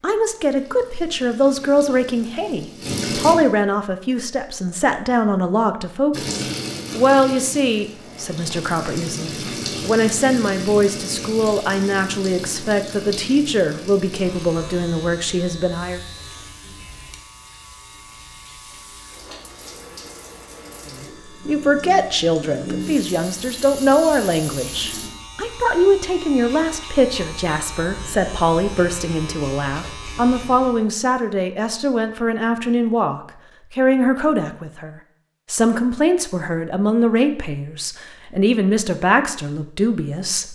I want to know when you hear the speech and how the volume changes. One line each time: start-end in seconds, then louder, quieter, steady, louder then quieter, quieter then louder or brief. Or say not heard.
0.0-16.0 steady
20.9-40.5 steady.